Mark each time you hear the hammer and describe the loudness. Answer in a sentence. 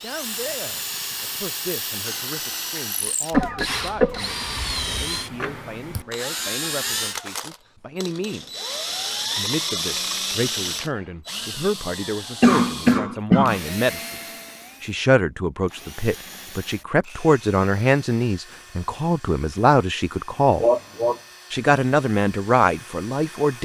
The hammer can't be heard in this clip.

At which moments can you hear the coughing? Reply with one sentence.
You can hear the coughing from 3.3 to 5.0 s, from 12.4 to 13.6 s and from 20.6 to 21.2 s.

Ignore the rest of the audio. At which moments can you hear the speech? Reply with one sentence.
You can hear the speech from 0.0 to 8.6 s, from 9.3 to 14.2 s, from 14.8 to 20.6 s and from 21.5 to 23.6 s.